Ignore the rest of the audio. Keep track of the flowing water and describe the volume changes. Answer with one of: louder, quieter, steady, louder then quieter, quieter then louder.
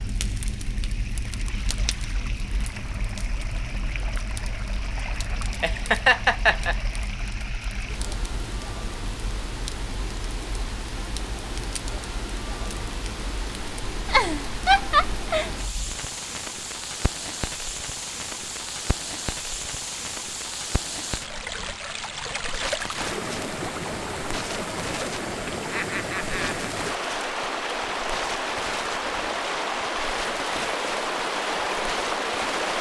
louder.